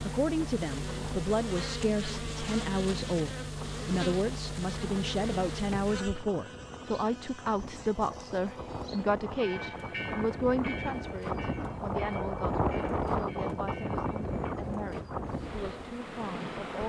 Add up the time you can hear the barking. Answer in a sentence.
The barking can't be heard in this clip.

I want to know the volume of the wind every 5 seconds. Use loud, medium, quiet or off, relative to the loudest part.
quiet, medium, loud, medium.